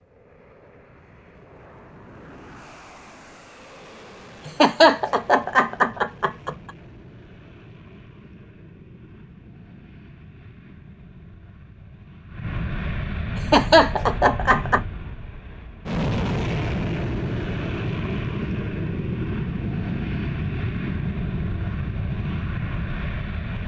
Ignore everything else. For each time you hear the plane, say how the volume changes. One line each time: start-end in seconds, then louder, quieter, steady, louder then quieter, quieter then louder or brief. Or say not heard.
0.0-23.6 louder.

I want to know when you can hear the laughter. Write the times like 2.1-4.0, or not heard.
4.5-6.5, 13.3-14.8.